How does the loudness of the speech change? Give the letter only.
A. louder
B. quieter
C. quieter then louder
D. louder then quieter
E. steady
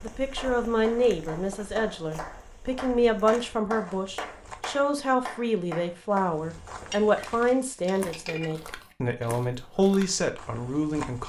E.